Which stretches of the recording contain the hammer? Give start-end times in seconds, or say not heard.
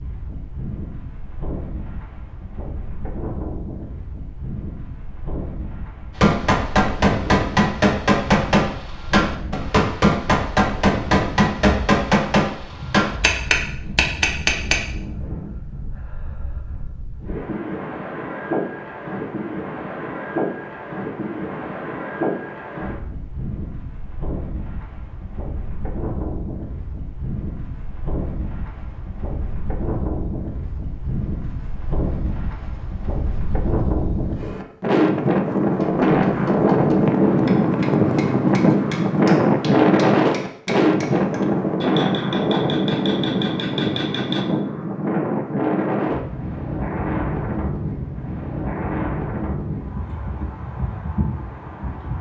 6.2-14.8, 35.7-44.5.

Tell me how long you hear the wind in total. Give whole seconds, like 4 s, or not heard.
52 s.